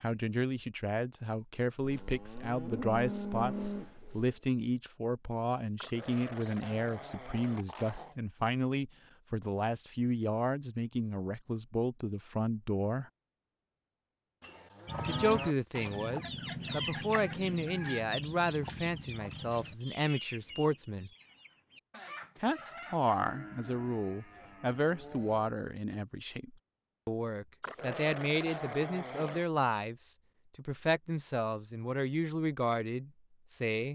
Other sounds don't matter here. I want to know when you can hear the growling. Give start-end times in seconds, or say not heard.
5.8-8.2, 27.6-29.4.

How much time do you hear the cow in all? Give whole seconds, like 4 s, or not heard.
6 s.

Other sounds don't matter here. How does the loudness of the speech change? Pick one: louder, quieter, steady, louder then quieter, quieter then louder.
steady.